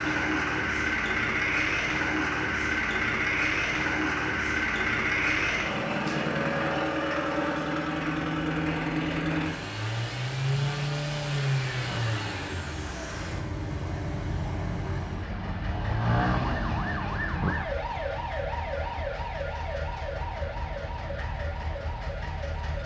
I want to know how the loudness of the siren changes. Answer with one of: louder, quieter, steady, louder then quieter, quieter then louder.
louder then quieter.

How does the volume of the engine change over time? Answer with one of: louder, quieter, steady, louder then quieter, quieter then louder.
quieter.